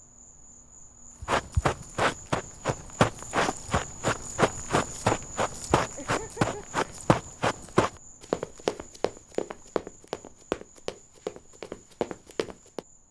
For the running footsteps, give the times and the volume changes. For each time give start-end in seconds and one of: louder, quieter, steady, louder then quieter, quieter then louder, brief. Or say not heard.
1.2-12.8 quieter.